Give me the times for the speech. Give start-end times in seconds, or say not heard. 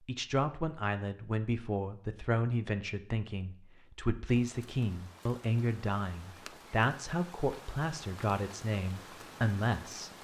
0.1-10.1.